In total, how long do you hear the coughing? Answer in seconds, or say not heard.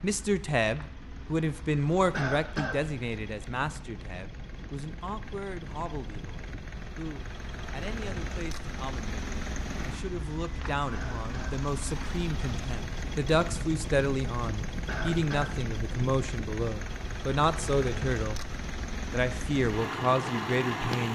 2 s.